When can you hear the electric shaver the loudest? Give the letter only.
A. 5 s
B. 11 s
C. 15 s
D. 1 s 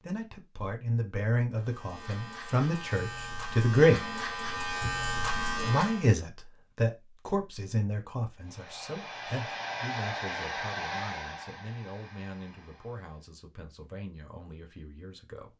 A.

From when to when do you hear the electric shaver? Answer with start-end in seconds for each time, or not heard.
1.5-6.0.